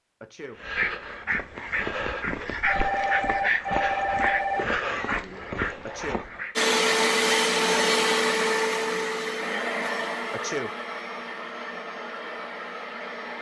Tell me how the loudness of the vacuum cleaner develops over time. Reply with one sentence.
The volume of the vacuum cleaner goes down.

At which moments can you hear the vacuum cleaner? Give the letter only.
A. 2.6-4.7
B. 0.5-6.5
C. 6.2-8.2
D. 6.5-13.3
D.